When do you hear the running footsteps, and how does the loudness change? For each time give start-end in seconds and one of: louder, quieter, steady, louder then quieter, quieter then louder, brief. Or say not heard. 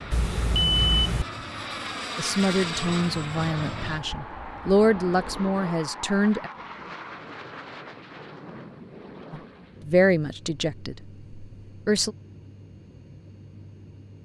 not heard.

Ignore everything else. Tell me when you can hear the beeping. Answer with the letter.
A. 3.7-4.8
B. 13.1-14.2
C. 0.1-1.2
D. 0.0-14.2
C.